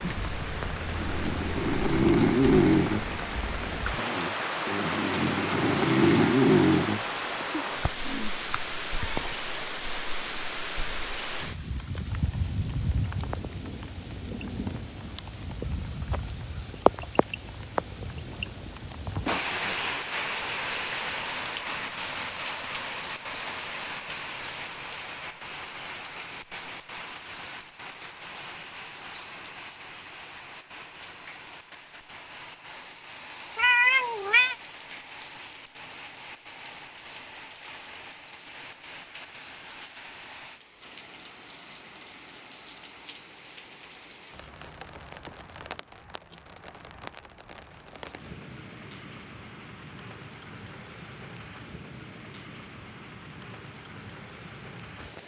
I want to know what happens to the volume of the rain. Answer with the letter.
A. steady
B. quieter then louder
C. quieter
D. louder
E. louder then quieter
C.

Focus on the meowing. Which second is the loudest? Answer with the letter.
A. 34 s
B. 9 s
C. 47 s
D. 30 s
A.